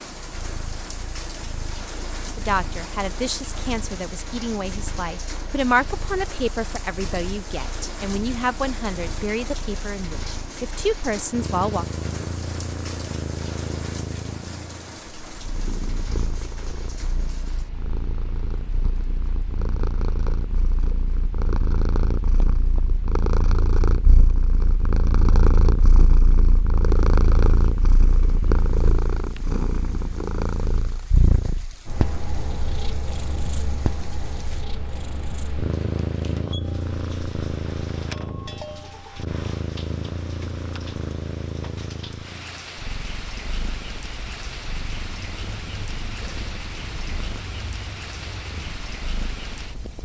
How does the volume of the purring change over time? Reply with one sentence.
The loudness of the purring goes up, then down.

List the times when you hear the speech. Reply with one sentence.
You can hear the speech from 2.4 to 11.8 s.